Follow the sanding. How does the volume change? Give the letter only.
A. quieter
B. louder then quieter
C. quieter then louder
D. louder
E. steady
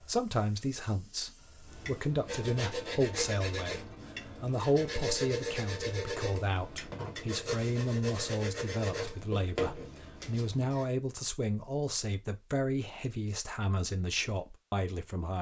E.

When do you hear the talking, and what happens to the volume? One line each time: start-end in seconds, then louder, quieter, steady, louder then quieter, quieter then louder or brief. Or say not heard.
0.0-15.3 steady.